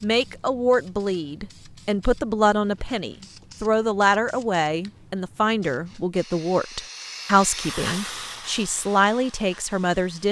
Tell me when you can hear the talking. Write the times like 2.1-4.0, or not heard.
0.0-10.2.